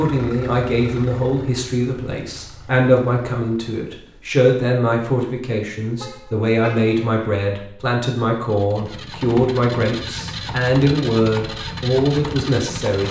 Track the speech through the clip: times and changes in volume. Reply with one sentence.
The speech can be heard from 0.0 to 13.0 s, at a steady volume.